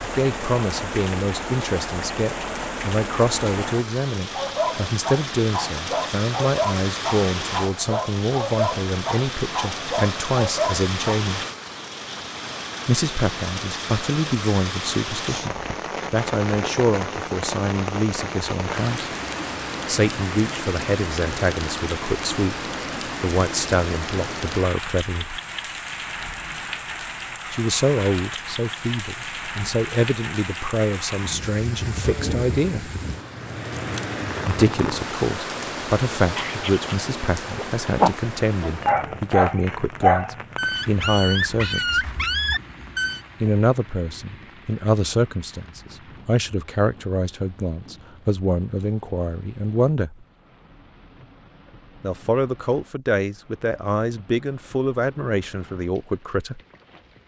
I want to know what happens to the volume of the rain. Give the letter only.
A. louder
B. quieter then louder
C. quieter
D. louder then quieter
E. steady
C.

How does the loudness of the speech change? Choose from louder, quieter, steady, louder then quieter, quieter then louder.
steady.